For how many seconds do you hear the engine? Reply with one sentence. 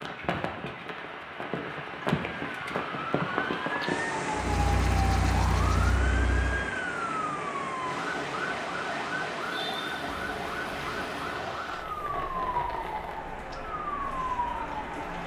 The engine can be heard for 2 seconds in total.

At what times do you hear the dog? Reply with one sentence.
The dog can't be heard in this clip.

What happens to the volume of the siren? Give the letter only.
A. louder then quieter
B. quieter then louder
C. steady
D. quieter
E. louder
C.